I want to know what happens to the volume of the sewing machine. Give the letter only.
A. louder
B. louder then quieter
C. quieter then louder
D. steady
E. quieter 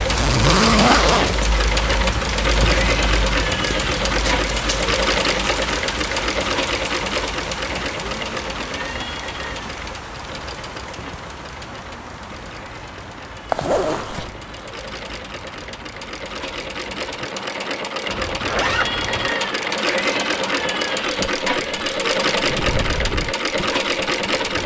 C.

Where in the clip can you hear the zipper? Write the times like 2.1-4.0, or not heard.
0.1-1.4, 13.5-14.3, 18.1-19.4.